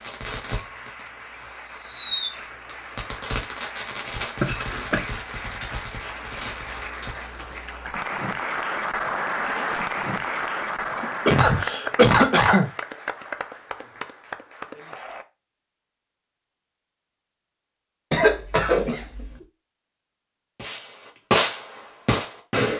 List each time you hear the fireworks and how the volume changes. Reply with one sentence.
You can hear the fireworks from 0.0 to 7.5 s, getting quieter; and briefly from 20.6 to 22.7 s.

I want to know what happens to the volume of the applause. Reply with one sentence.
The loudness of the applause goes up, then down.